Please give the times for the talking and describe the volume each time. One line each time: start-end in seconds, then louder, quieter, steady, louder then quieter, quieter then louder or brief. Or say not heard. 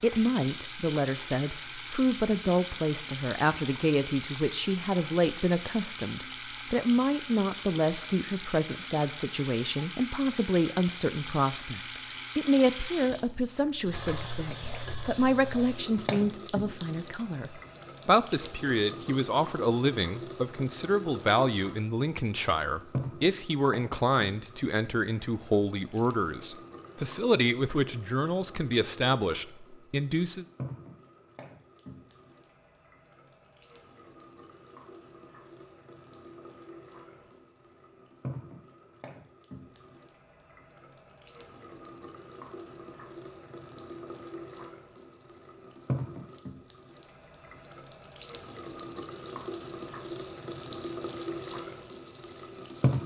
0.0-30.4 steady.